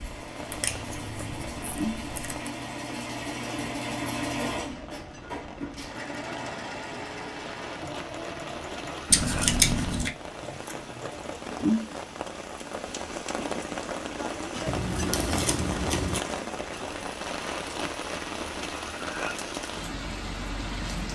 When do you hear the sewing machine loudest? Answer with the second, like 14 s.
4 s.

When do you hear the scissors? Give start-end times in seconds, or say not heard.
0.5-2.5, 9.1-10.1, 14.7-16.2.